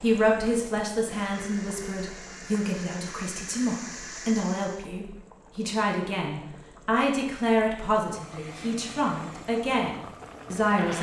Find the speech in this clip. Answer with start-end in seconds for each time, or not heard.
0.0-10.9.